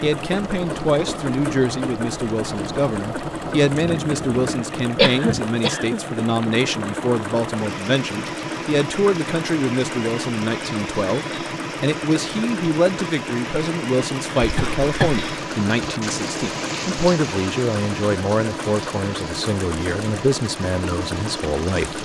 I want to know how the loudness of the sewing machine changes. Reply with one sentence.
The loudness of the sewing machine stays about the same.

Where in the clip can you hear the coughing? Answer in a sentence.
You can hear the coughing from 5.0 to 6.0 s and from 14.4 to 15.2 s.